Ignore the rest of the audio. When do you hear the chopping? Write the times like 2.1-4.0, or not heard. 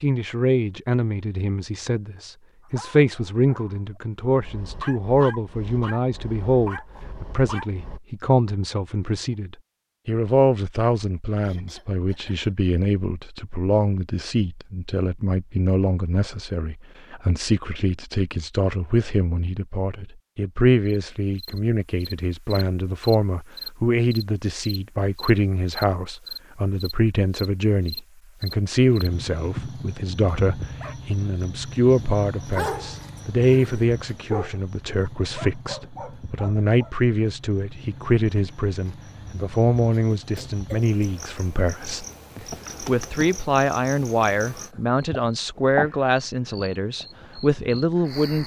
not heard.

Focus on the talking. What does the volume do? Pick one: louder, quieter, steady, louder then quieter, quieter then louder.
steady.